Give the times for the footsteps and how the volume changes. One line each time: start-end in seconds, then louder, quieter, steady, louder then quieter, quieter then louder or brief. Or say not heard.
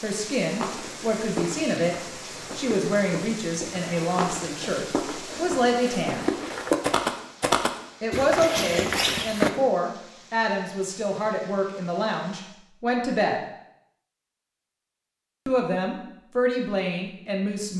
0.5-9.5 louder.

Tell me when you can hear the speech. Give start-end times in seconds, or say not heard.
0.0-6.2, 8.0-13.4, 15.4-17.7.